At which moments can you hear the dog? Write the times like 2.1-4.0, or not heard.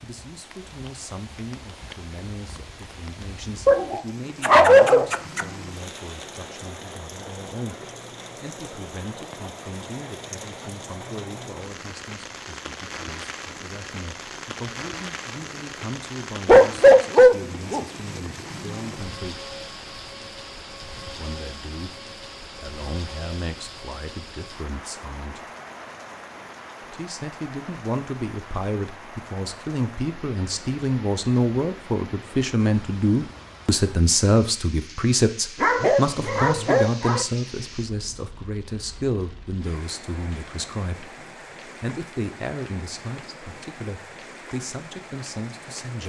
3.6-5.5, 16.4-17.9, 35.6-37.2.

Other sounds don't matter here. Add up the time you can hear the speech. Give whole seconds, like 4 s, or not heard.
43 s.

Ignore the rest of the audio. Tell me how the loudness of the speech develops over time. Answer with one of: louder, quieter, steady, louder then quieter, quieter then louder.
louder then quieter.